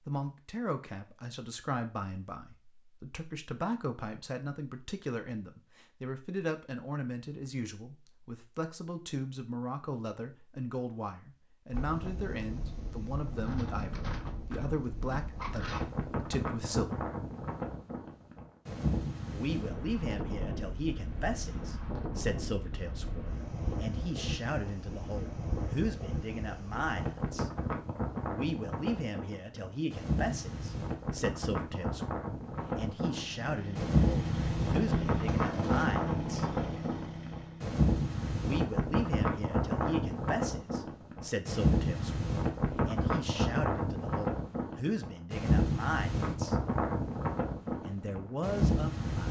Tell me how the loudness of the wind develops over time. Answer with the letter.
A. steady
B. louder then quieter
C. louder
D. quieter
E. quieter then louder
C.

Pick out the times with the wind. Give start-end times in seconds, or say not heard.
11.7-49.2.